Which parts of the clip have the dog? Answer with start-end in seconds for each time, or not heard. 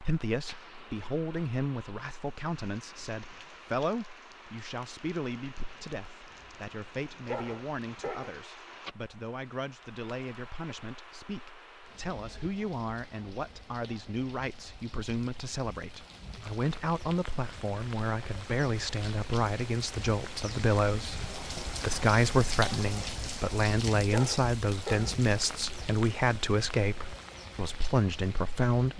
7.2-8.4, 24.1-25.2.